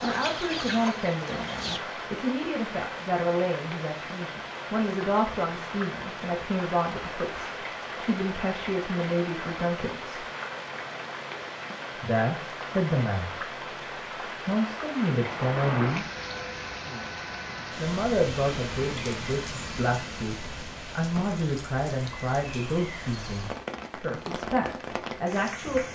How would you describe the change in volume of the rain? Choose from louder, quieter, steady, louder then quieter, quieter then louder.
steady.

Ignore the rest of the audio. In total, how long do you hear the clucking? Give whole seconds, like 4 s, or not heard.
2 s.